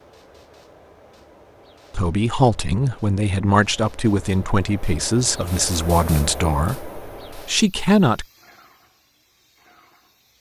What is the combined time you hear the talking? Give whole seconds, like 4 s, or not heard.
6 s.